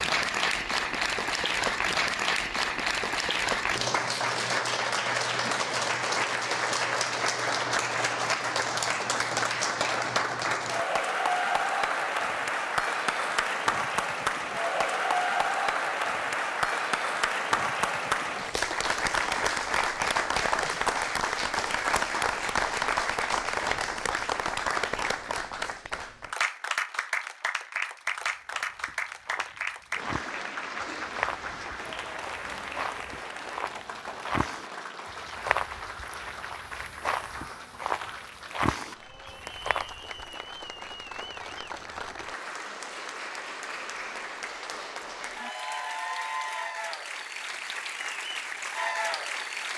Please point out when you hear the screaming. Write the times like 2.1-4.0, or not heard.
not heard.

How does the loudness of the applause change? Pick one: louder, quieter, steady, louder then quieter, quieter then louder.
quieter.